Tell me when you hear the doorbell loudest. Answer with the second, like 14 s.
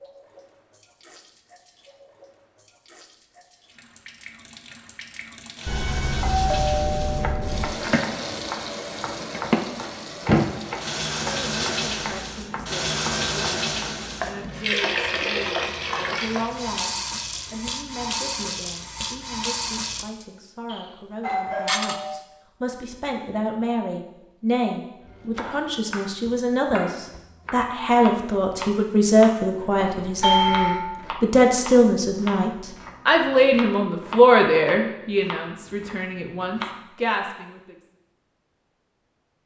30 s.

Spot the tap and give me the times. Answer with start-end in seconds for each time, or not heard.
0.0-20.1.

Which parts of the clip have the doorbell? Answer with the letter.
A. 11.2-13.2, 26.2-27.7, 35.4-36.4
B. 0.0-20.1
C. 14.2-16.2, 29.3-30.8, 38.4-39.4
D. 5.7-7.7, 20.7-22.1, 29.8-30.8
D.